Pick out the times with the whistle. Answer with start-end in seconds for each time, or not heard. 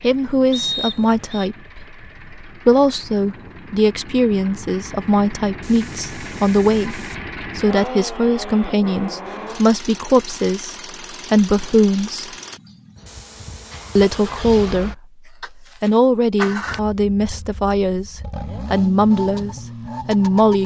0.5-1.5.